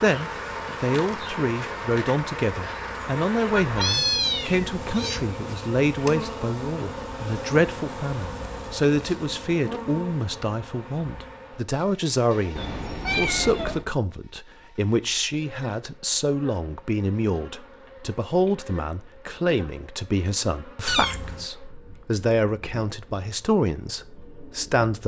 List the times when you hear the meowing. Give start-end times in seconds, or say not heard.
3.5-5.2, 12.6-13.8, 20.9-21.4.